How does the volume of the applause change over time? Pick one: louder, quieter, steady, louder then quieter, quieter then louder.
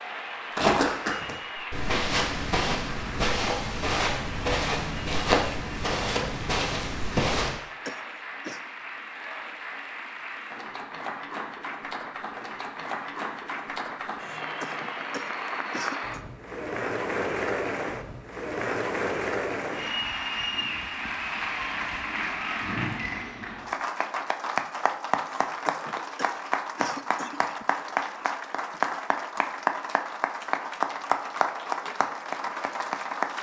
louder.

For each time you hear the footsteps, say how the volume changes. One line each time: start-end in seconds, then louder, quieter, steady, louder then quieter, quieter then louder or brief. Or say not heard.
0.6-7.5 steady.